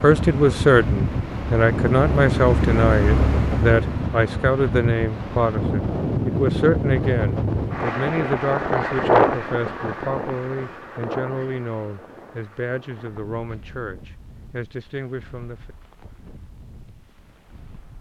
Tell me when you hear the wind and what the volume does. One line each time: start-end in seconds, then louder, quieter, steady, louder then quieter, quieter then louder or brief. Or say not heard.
0.0-17.9 quieter.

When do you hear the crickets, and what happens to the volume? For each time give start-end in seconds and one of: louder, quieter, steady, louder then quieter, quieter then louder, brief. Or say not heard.
not heard.